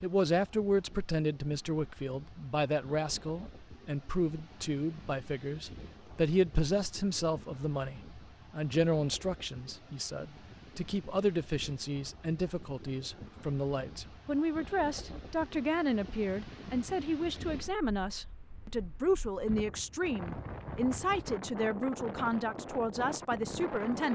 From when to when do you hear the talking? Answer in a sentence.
The talking can be heard from 0.0 to 24.1 s.